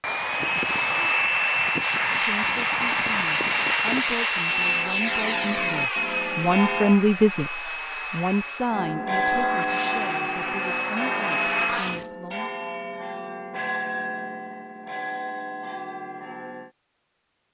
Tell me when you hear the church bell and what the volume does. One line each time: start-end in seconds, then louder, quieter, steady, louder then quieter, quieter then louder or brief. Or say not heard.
4.5-7.0 brief
8.7-16.7 quieter.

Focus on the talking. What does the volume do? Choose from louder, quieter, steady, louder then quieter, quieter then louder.
louder then quieter.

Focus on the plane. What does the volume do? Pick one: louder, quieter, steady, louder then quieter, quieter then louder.
quieter then louder.